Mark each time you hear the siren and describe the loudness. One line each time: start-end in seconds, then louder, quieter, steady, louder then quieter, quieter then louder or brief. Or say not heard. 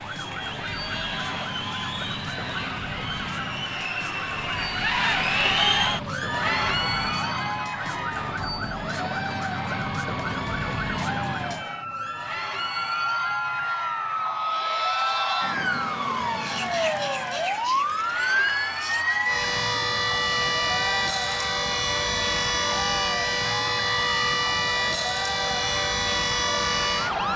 0.0-27.3 louder.